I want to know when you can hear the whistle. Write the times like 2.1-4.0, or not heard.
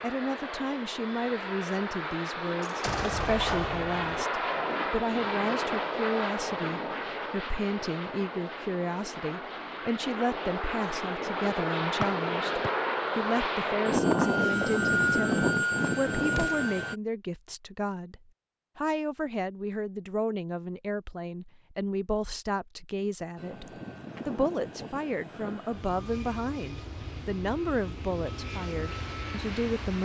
12.0-12.7.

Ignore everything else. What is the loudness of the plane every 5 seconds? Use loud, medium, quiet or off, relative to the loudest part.
medium, medium, loud, loud, quiet, quiet.